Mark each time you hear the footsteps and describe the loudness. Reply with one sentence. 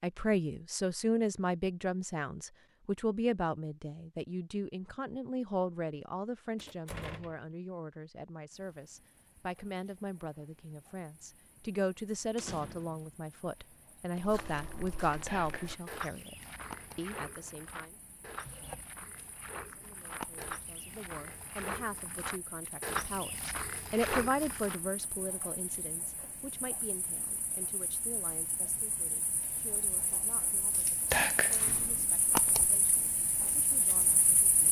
You can hear the footsteps from 14.2 to 24.8 s, getting louder.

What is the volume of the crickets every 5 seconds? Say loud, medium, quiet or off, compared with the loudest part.
off, quiet, quiet, quiet, quiet, quiet, loud.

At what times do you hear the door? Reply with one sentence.
You can hear the door from 6.5 to 7.5 s, from 12.3 to 13.1 s and from 31.6 to 32.2 s.